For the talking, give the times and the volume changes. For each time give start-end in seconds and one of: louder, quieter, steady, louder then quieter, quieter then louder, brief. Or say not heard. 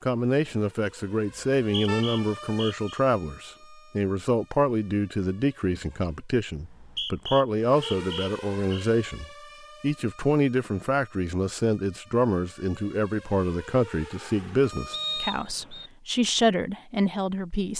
0.0-17.7 steady.